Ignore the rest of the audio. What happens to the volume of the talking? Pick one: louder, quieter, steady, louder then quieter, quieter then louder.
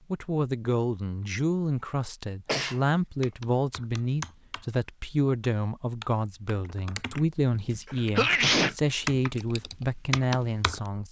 steady.